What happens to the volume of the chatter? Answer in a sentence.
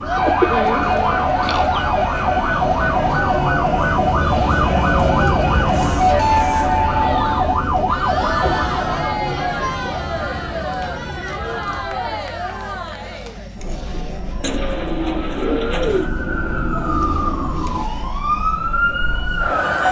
The loudness of the chatter goes down.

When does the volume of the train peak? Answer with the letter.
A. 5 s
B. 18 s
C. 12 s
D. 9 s
A.